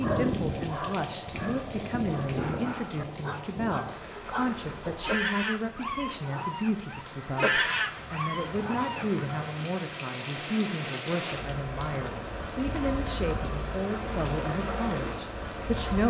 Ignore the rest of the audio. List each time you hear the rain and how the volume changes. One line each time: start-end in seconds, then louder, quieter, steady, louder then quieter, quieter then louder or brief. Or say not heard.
0.0-16.0 quieter then louder.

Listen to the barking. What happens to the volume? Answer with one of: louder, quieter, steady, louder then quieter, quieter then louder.
louder.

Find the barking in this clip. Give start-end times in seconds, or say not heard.
0.0-9.2.